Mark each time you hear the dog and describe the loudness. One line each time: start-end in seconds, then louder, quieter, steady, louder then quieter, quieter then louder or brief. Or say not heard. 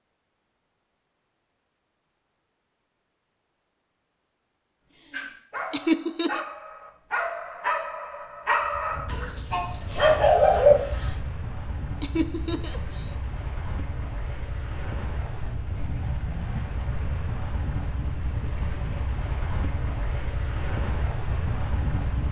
5.0-11.2 louder.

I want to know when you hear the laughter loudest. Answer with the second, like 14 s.
6 s.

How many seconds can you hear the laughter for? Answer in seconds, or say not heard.
2 s.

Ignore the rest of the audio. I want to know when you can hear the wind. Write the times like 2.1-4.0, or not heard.
8.6-22.2.